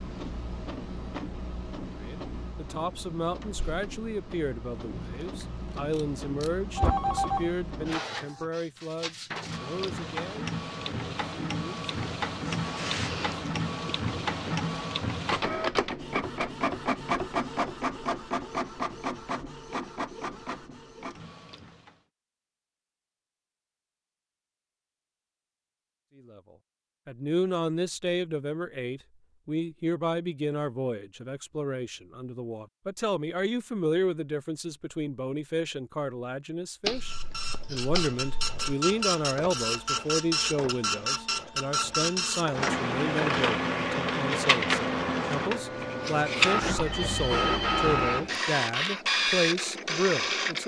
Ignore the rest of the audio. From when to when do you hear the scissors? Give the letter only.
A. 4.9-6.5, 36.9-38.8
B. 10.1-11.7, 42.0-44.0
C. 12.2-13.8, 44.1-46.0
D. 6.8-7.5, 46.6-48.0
A.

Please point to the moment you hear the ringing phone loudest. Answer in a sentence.
The volume of the ringing phone peaks at 7 seconds.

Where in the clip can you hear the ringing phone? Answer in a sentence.
The ringing phone can be heard from 6.8 to 7.5 s and from 46.6 to 48.0 s.